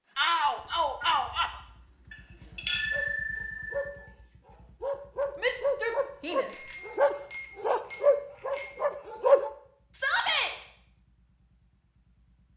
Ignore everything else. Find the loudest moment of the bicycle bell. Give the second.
3 s.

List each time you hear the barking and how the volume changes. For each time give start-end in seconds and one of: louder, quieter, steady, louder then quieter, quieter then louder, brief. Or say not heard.
2.7-9.5 louder.